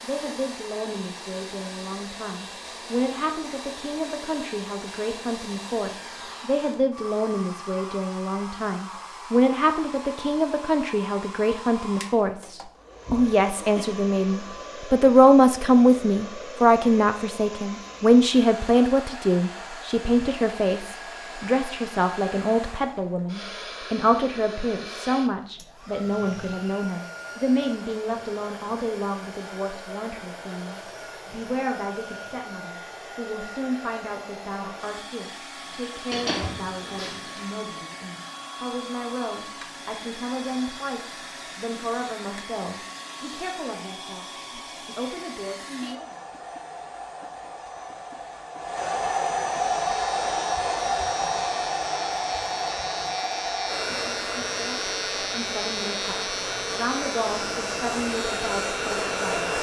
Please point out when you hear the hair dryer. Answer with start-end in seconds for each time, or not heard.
0.0-59.5.